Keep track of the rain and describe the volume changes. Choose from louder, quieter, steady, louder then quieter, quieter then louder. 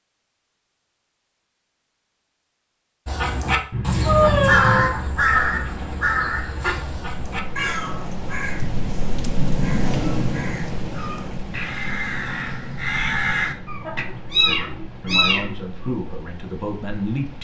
louder then quieter.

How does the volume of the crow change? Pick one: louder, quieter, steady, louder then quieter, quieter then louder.
quieter then louder.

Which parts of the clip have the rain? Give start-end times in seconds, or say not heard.
4.9-17.3.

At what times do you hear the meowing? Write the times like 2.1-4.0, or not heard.
3.7-4.9, 13.7-15.4.